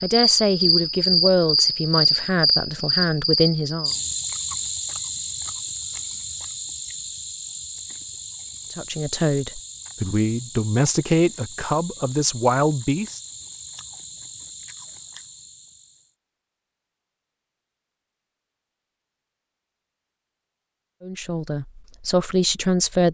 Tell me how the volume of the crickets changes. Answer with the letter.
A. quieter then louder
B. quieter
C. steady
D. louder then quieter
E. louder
B.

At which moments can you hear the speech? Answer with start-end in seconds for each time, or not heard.
0.0-3.9, 8.7-13.2, 21.0-23.1.